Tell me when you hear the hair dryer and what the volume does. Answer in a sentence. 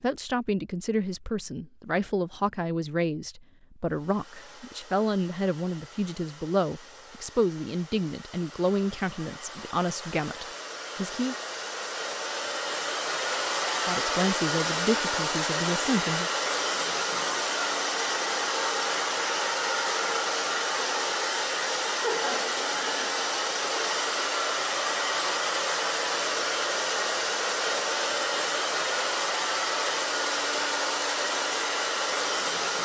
The hair dryer can be heard from 3.9 to 32.8 s, getting louder.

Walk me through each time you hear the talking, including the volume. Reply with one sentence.
The talking can be heard from 0.0 to 11.3 s, at a steady volume; and briefly from 13.8 to 16.3 s.